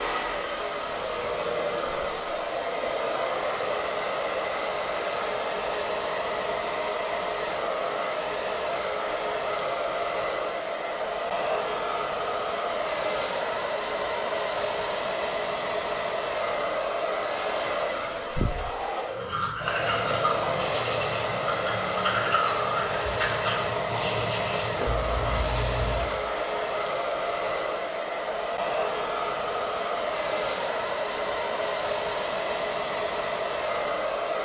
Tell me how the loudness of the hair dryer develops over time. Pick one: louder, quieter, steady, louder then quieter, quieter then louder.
steady.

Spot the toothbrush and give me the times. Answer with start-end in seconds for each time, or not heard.
19.1-26.2.